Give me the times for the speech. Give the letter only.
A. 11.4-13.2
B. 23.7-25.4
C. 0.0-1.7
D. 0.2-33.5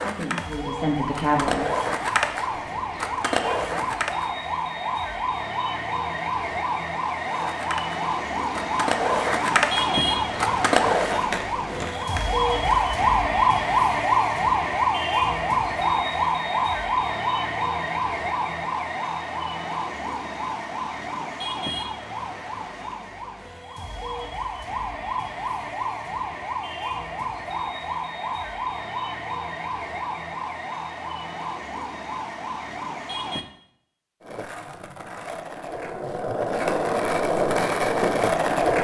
C.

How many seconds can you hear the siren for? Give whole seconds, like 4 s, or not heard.
33 s.